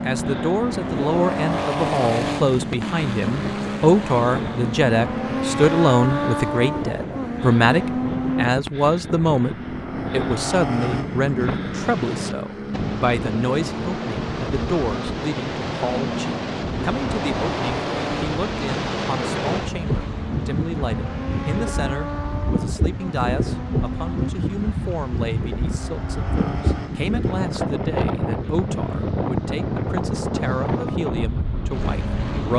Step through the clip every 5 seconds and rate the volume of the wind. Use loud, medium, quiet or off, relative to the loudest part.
medium, medium, loud, loud, loud, loud, loud.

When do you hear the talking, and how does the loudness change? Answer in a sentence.
You can hear the talking from 0.0 to 32.5 s, getting quieter.